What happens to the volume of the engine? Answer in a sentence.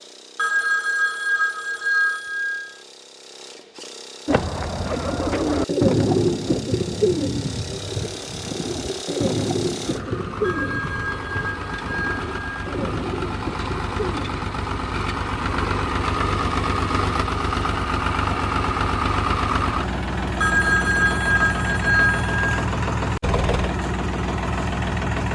The volume of the engine goes up.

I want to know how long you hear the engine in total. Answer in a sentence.
You can hear the engine for 25 seconds altogether.